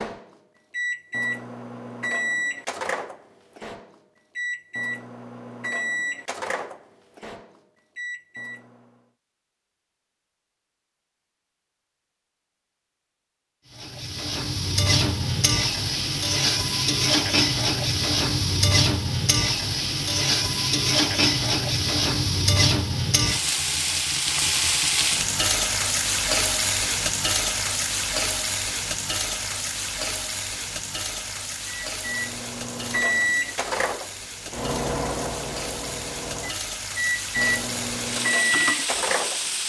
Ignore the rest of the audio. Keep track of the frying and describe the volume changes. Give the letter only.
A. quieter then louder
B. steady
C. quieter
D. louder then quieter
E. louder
C.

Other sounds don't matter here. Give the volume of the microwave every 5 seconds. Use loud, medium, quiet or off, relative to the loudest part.
loud, medium, off, off, off, off, loud, loud.